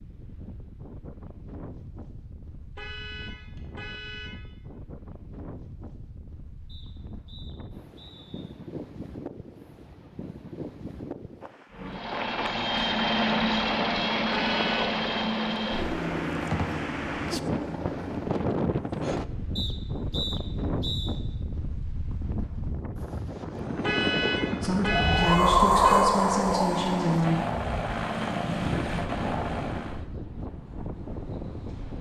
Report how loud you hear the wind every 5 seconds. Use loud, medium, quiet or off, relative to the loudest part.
quiet, quiet, quiet, medium, medium, loud, quiet.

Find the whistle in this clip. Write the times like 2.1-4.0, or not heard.
6.7-8.4, 19.6-21.2.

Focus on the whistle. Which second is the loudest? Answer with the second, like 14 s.
20 s.